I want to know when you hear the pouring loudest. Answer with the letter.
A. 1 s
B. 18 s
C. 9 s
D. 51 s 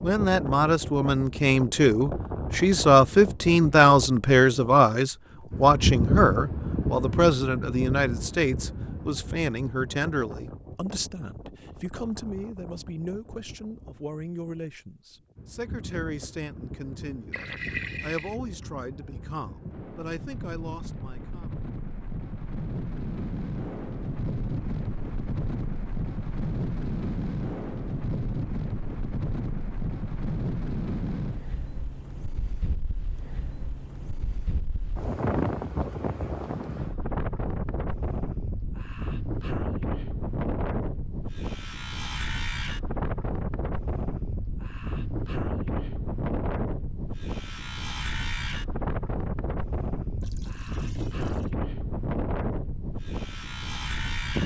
B.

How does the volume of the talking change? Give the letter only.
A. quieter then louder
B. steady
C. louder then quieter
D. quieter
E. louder
D.